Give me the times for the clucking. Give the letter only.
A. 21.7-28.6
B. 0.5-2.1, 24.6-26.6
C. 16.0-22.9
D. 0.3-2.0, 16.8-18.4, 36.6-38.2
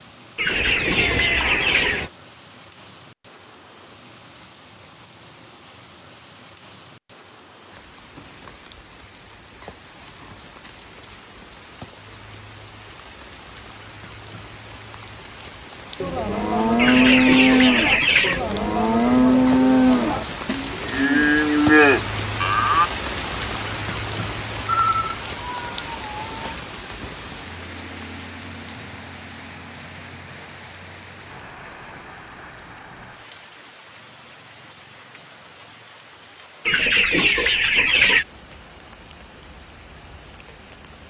D.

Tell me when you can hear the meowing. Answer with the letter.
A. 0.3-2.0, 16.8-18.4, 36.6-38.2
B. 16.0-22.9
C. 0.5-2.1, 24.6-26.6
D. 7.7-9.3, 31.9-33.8
C.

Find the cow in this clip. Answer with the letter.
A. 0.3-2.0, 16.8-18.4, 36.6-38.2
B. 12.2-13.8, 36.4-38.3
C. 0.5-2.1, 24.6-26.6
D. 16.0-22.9
D.